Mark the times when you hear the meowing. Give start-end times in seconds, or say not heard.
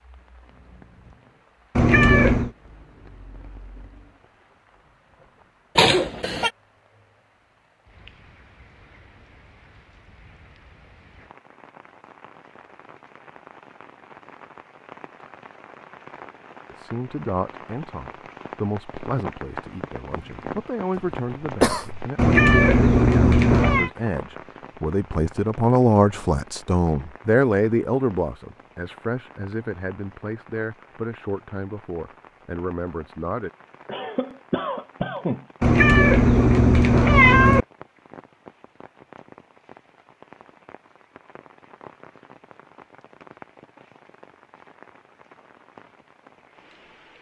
1.8-2.5, 22.1-23.9, 35.6-37.6.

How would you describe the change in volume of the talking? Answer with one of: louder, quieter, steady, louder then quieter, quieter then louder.
louder then quieter.